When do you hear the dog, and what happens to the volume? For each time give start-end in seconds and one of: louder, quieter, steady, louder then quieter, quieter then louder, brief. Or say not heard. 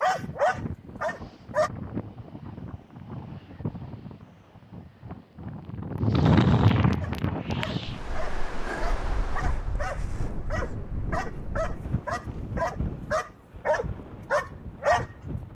0.0-1.7 brief
7.0-15.4 louder.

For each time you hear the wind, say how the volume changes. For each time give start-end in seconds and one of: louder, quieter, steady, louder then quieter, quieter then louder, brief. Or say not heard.
0.0-15.4 louder then quieter.